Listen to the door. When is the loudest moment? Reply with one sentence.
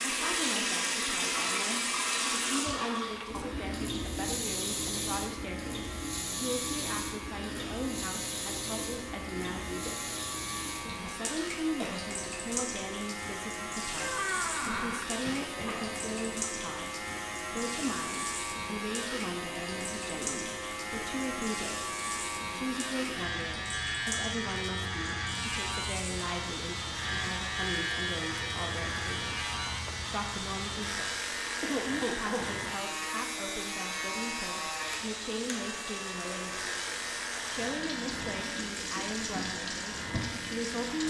The loudest moment of the door is at 14 seconds.